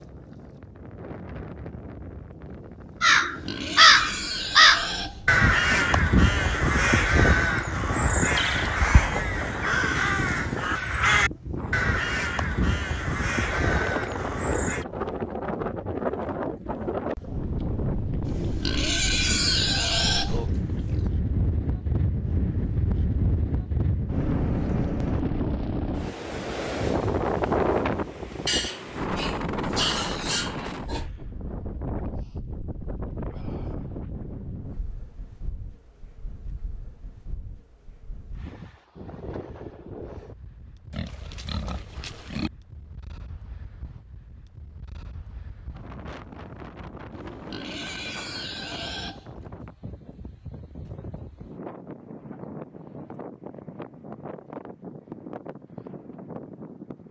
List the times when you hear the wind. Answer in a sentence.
The wind can be heard from 0.0 to 57.0 s.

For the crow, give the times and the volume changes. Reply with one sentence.
You can hear the crow from 3.0 to 14.8 s, getting quieter.